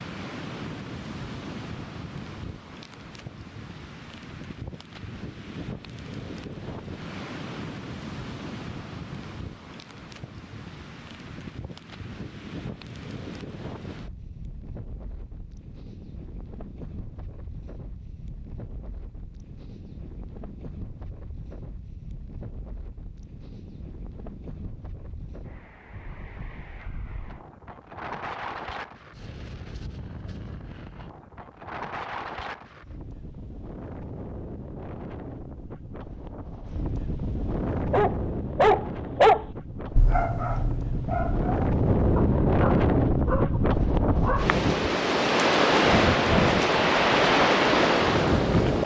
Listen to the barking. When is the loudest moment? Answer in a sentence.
The loudest moment of the barking is at 39 seconds.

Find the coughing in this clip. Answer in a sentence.
You can't hear the coughing here.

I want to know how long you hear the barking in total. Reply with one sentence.
The barking can be heard for 7 seconds in total.